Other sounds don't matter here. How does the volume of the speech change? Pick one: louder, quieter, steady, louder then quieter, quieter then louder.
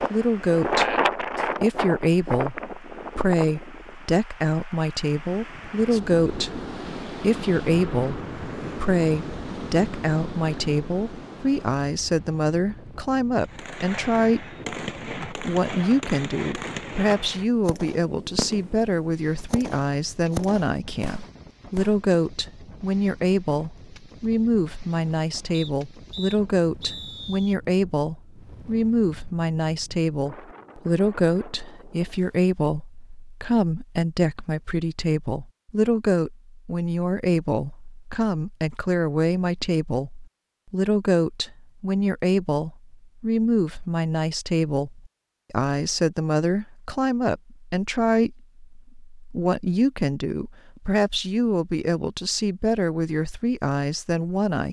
steady.